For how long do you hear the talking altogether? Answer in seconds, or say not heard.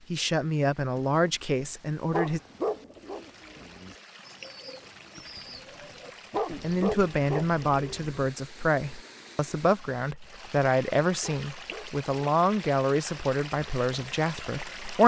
11 s.